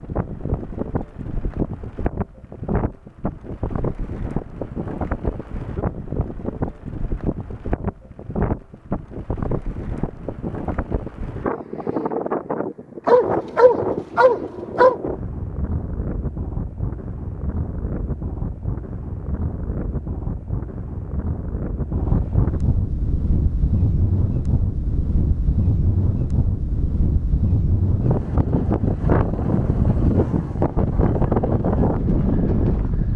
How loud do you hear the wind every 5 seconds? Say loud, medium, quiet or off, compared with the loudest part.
medium, medium, medium, medium, medium, loud, loud.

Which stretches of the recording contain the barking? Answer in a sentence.
You can hear the barking from 13.1 to 14.9 s.